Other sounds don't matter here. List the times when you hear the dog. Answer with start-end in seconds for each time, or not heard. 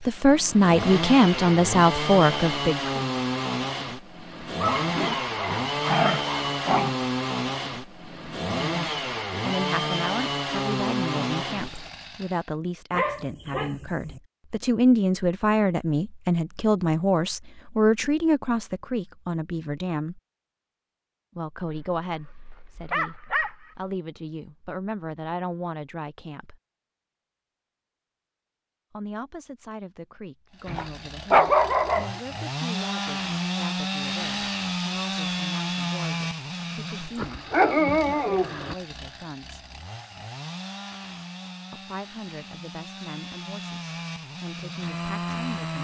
4.6-7.0, 12.9-14.2, 21.6-23.8, 30.6-32.2, 37.1-38.8.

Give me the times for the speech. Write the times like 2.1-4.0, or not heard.
0.1-3.0, 8.1-20.2, 21.4-26.6, 28.9-39.6, 41.7-45.7.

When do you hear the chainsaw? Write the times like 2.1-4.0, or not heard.
0.0-12.4, 30.6-45.7.